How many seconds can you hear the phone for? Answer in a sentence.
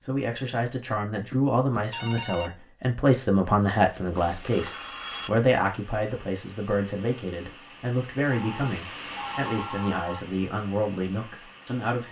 The phone can be heard for 4 seconds in total.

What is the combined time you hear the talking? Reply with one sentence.
The talking can be heard for 12 seconds in total.